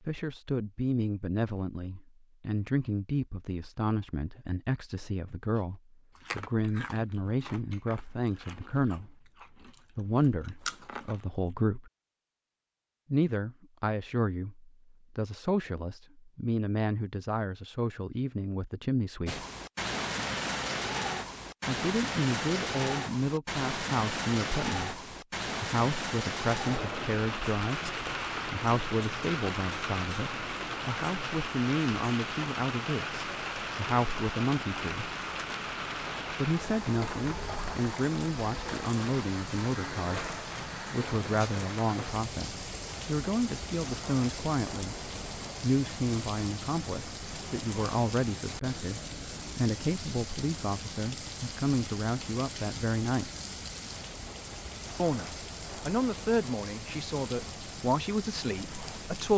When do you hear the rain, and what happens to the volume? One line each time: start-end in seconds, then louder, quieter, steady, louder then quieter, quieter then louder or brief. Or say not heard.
19.2-59.3 quieter.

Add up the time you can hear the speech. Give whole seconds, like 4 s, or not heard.
52 s.